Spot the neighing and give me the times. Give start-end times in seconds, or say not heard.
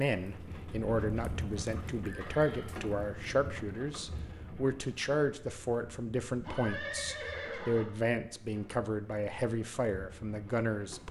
2.0-2.8, 6.4-7.8.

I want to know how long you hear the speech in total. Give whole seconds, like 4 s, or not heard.
11 s.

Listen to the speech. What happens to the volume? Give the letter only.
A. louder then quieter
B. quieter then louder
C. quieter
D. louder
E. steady
E.